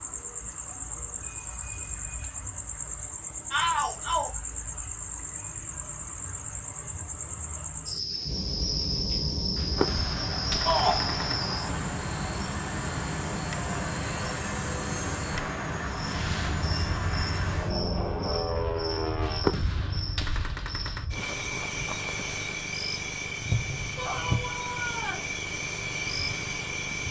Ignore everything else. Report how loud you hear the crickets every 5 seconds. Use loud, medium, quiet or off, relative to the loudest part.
loud, loud, loud, medium, loud, loud.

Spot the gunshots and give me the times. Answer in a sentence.
You can hear the gunshots from 9.6 to 11.4 s and from 19.2 to 21.1 s.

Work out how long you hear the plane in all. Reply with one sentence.
The plane can be heard for 11 seconds in total.